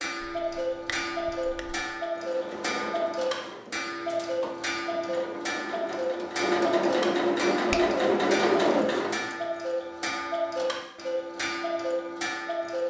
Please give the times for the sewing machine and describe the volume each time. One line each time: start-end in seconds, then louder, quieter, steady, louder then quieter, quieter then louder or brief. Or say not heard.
2.1-9.4 quieter then louder.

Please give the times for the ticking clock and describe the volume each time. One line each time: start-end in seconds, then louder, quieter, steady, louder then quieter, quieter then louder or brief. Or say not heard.
0.0-12.8 steady.